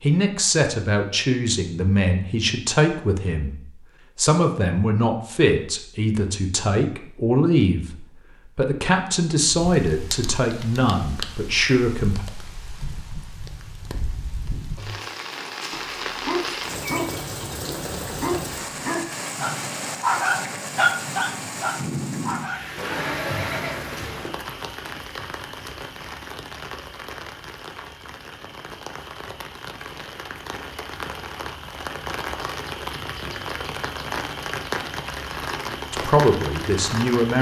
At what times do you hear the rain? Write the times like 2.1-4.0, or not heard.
9.4-37.3.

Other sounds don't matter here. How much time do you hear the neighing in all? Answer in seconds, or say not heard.
2 s.